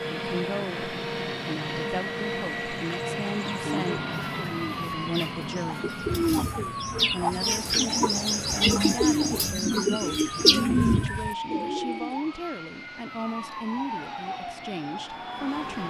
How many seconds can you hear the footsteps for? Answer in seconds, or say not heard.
not heard.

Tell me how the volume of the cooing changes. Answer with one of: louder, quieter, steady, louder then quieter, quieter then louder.
louder.